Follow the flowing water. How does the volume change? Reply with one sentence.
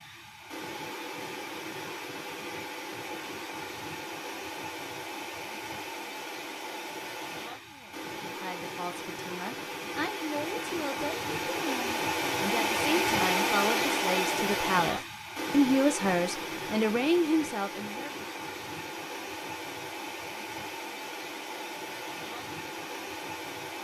The loudness of the flowing water goes up, then down.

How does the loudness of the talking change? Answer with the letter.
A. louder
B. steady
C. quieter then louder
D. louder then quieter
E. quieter
A.